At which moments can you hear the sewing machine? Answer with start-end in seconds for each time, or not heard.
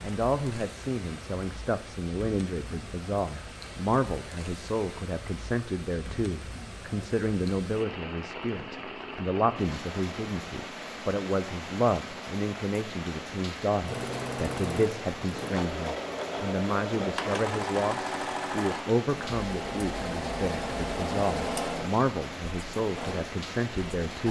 13.8-24.2.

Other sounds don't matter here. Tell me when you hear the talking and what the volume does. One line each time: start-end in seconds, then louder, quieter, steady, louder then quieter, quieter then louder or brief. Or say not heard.
0.0-24.2 steady.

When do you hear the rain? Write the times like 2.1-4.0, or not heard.
0.0-24.2.